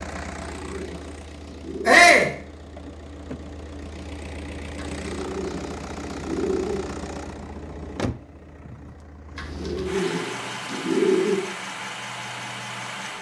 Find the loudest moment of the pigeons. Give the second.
11 s.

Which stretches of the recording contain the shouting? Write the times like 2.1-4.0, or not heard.
1.9-2.3.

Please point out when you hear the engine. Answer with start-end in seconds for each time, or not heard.
0.0-13.1.